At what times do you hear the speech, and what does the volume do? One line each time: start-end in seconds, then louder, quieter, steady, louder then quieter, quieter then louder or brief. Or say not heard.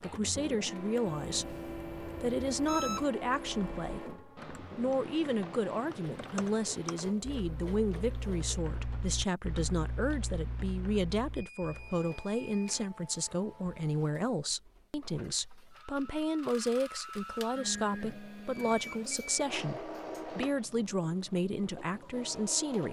0.0-22.8 steady.